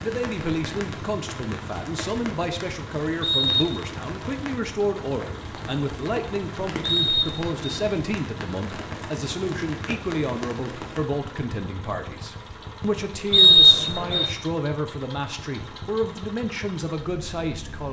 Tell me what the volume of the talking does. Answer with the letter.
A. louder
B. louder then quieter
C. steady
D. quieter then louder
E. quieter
C.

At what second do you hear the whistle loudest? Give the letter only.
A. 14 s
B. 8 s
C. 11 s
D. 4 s
A.